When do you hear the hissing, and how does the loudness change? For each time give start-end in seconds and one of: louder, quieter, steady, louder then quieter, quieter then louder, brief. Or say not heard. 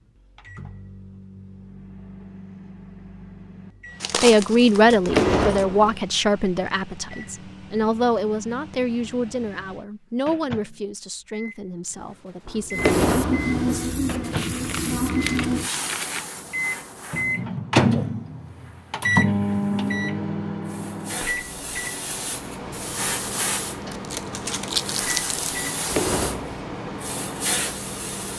12.7-28.3 quieter then louder.